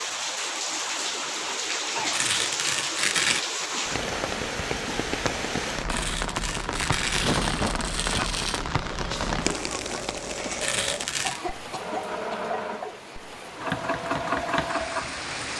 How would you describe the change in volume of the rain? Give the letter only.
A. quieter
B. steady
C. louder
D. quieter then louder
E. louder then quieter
A.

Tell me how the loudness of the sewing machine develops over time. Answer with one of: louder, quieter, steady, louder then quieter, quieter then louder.
louder.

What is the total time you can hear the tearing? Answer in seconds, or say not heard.
5 s.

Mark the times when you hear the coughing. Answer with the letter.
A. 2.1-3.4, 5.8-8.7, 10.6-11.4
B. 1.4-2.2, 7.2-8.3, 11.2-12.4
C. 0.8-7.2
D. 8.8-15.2
B.